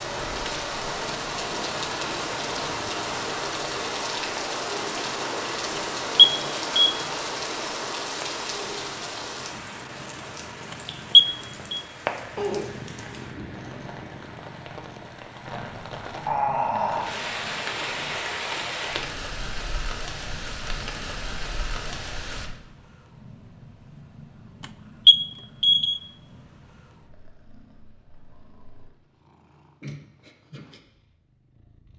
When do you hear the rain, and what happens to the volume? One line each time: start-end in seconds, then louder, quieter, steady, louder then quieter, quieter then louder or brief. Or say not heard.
0.0-22.5 quieter then louder.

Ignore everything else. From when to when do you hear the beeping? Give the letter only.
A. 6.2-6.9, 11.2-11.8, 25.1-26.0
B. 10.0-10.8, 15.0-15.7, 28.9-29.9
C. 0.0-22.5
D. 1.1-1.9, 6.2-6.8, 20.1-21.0
A.